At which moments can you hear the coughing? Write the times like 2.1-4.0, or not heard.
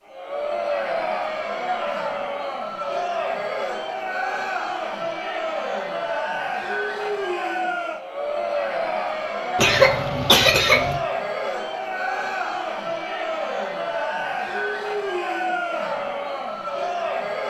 9.6-11.0.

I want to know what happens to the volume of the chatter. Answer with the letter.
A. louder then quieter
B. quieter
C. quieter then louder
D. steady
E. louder
D.